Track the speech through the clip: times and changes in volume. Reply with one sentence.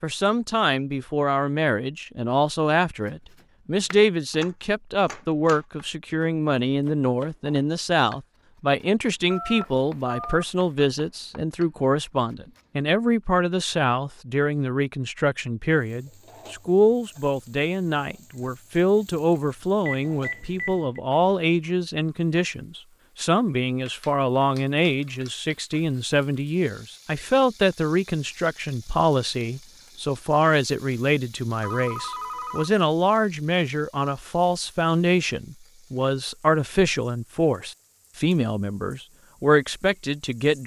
You can hear the speech from 0.0 to 40.6 s, at a steady volume.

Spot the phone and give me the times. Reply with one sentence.
You can hear the phone from 9.3 to 10.7 s, from 19.9 to 21.0 s and from 31.6 to 32.7 s.